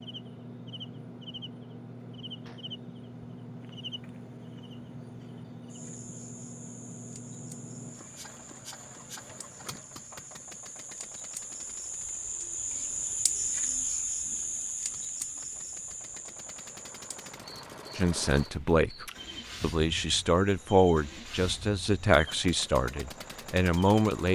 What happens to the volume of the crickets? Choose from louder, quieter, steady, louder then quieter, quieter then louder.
louder then quieter.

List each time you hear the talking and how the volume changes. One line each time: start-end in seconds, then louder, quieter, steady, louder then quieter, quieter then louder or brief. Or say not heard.
17.9-24.3 steady.